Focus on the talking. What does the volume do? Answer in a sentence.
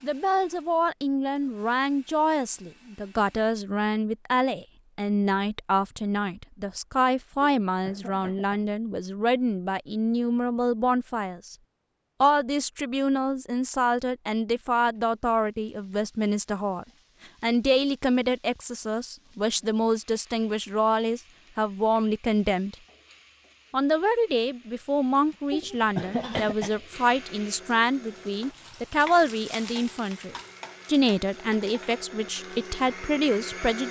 The volume of the talking stays about the same.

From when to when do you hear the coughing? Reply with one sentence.
You can hear the coughing from 7.4 to 8.6 s and from 25.5 to 26.9 s.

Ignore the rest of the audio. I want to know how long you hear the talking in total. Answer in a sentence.
You can hear the talking for 32 seconds altogether.